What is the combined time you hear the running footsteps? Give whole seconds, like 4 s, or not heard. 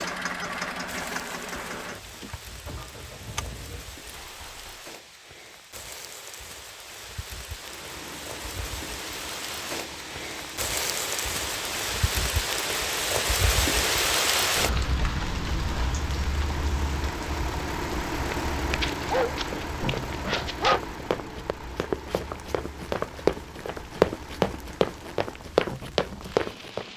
7 s.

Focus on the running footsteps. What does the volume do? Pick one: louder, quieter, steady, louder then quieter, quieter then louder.
louder.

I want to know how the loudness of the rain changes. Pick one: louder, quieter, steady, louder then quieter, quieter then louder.
louder then quieter.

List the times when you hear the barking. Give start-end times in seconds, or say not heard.
18.3-20.8.